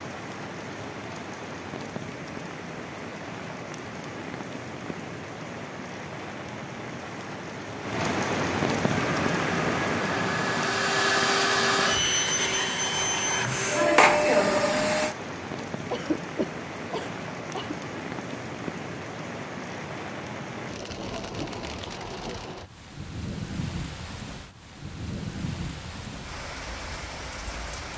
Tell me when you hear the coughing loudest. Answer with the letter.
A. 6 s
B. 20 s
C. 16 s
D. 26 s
C.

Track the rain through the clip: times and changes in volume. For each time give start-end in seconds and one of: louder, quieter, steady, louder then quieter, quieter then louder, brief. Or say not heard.
0.0-27.9 louder then quieter.